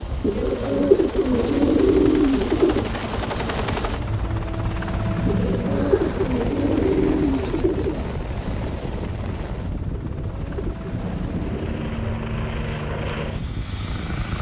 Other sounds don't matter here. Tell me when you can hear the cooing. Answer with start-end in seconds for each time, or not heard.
0.2-2.9, 5.2-8.1, 9.9-11.9.